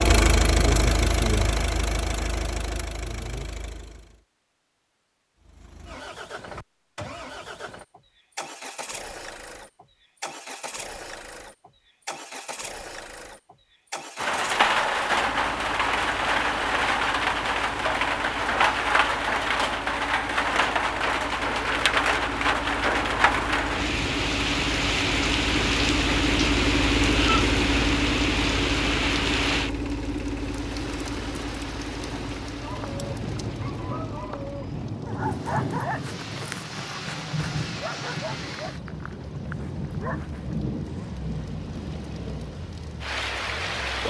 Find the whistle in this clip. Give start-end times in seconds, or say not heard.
not heard.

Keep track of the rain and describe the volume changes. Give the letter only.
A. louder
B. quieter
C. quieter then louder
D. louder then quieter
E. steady
B.